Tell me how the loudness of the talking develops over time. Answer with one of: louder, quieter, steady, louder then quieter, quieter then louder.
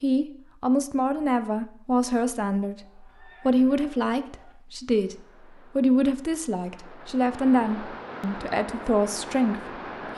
steady.